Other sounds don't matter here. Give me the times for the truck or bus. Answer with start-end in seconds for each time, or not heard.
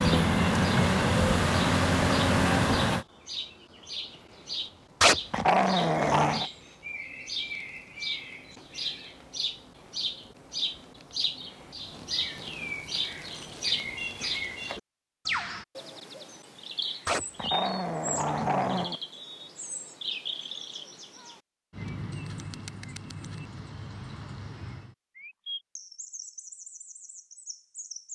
0.0-3.0.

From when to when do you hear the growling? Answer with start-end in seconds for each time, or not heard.
5.0-6.5, 17.1-19.0.